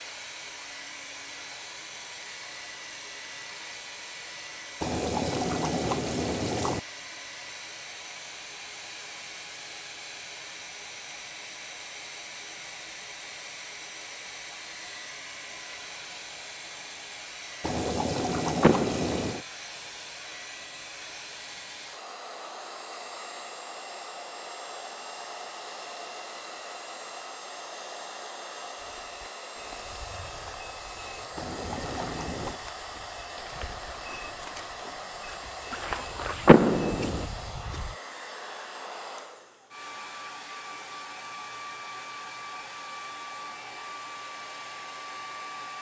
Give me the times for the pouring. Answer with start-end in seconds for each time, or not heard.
4.8-6.8, 17.6-19.4, 31.4-32.6.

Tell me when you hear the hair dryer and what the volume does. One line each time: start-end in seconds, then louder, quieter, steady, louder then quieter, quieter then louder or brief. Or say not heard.
0.0-45.7 steady.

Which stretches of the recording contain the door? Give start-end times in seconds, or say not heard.
18.6-19.4, 36.5-37.2.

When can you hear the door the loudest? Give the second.
37 s.